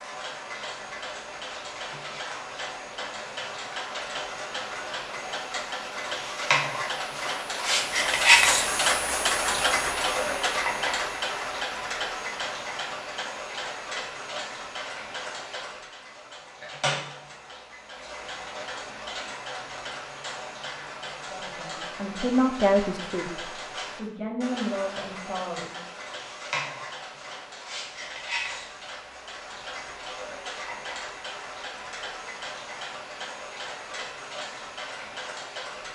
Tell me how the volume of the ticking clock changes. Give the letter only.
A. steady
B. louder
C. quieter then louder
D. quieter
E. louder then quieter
E.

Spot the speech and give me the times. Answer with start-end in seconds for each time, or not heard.
21.3-25.8.